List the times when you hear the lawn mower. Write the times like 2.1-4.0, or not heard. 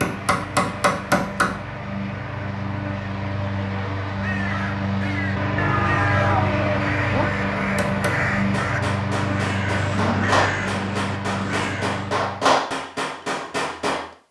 0.0-12.6.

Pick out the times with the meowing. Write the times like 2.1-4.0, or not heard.
5.5-7.3.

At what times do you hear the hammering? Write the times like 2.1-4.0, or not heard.
0.0-1.6, 7.7-14.1.